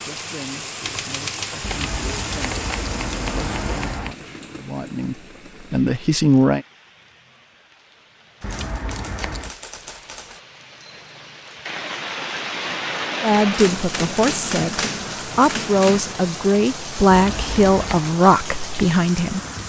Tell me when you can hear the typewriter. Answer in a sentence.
The typewriter can be heard from 0.8 to 2.8 s, from 8.4 to 10.4 s and from 13.5 to 16.1 s.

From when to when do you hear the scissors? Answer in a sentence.
You can hear the scissors from 1.6 to 4.2 s, from 8.4 to 9.6 s and from 17.1 to 18.0 s.